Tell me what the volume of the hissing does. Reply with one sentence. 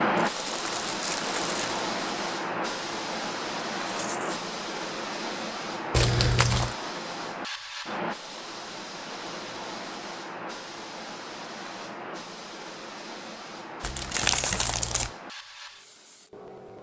The volume of the hissing goes down.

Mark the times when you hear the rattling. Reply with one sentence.
The rattling can be heard from 3.9 to 4.4 s and from 14.2 to 14.7 s.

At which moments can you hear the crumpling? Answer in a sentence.
You can hear the crumpling from 0.1 to 1.8 s, from 5.9 to 6.8 s and from 13.8 to 15.1 s.